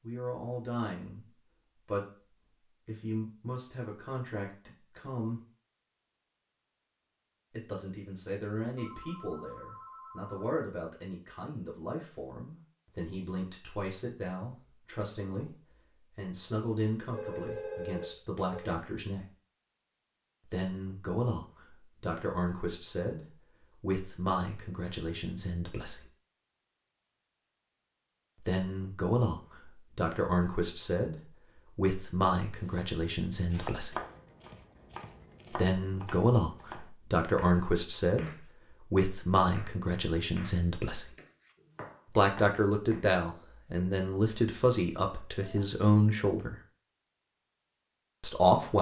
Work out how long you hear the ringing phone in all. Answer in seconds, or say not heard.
4 s.